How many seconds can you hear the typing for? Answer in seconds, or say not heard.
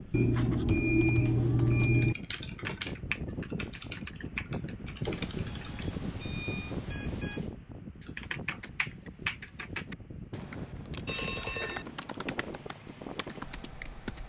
12 s.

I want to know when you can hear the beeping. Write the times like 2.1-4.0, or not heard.
0.1-2.1, 5.0-7.5, 11.1-11.8.